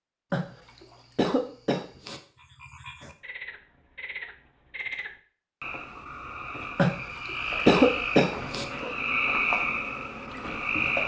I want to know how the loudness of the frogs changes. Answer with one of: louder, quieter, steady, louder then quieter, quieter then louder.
louder.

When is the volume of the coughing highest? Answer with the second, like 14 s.
8 s.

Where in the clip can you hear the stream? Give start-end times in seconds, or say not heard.
not heard.